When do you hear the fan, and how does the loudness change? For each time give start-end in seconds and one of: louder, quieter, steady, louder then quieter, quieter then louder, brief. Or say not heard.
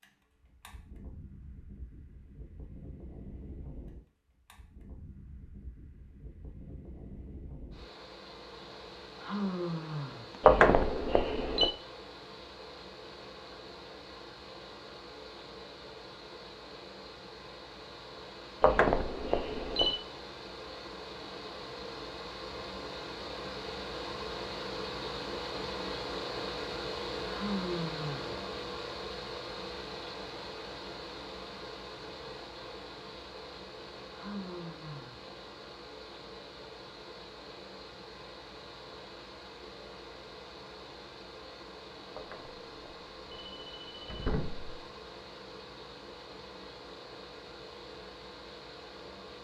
0.0-49.3 louder then quieter.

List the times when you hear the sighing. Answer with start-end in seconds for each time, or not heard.
9.2-10.4, 27.2-28.4, 34.1-35.3.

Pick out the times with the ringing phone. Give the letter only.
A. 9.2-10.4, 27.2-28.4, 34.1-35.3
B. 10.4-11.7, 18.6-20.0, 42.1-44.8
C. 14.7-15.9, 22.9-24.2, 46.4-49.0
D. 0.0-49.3
B.